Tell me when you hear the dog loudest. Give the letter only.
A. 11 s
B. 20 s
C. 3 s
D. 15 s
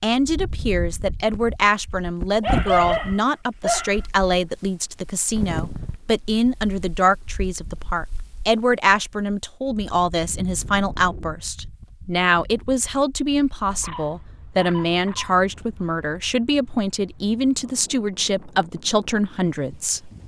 C.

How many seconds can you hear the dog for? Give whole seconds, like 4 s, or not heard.
3 s.